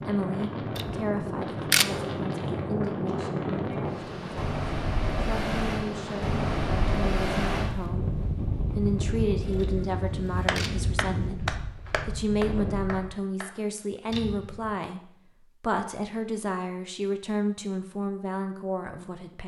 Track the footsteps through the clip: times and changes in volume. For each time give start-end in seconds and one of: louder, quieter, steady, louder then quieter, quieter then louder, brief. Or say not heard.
not heard.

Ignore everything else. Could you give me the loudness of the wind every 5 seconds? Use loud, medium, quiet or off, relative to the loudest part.
loud, loud, medium, off.